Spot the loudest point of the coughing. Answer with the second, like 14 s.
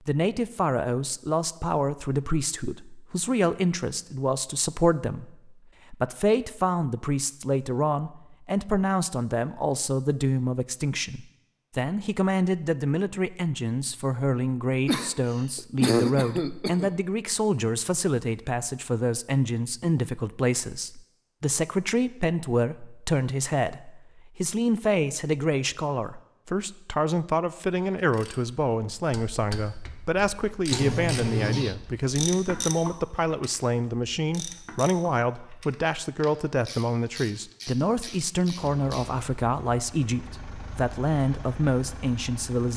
16 s.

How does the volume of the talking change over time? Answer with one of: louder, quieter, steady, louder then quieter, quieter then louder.
steady.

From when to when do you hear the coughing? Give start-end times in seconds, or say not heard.
14.8-16.9, 30.7-31.8.